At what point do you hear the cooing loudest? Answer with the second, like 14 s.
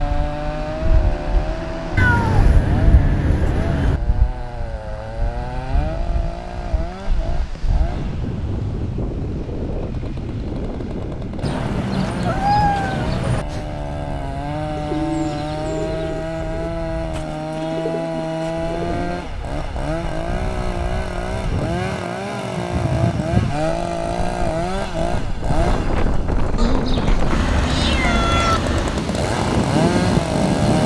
15 s.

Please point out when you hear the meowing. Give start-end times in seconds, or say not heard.
1.9-4.0, 11.4-13.4, 26.6-28.6.